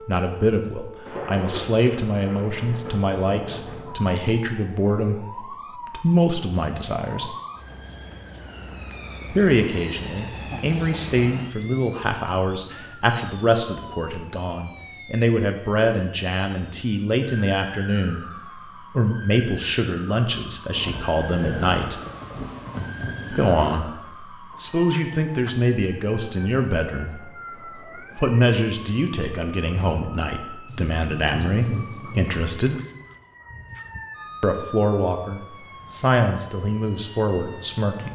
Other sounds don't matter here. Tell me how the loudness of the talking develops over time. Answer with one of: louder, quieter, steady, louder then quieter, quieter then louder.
steady.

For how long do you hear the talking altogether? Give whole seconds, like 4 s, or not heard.
33 s.